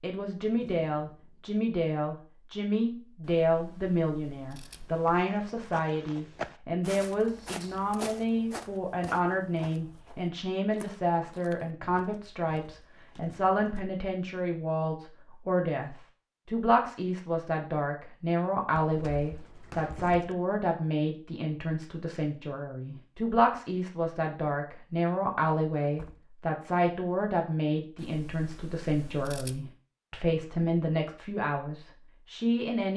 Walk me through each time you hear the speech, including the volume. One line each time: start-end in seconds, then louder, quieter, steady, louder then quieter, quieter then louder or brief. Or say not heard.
0.0-32.9 steady.